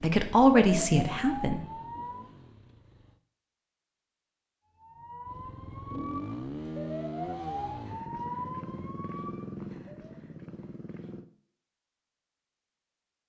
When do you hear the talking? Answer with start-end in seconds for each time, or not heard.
0.0-1.6.